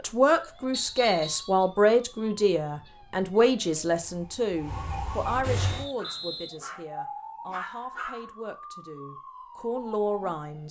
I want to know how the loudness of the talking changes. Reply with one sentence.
The loudness of the talking goes down, then up.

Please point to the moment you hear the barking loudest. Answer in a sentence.
The volume of the barking peaks at 8 seconds.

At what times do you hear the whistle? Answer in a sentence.
The whistle can be heard from 0.7 to 1.6 s and from 5.7 to 6.6 s.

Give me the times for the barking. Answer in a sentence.
You can hear the barking from 5.8 to 8.2 s.